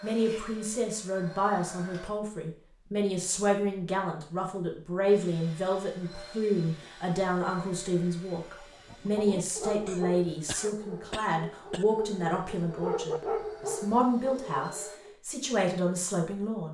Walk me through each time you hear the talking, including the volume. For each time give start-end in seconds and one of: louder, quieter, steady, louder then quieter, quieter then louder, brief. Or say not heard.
0.0-16.7 steady.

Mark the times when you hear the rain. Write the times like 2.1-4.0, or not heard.
not heard.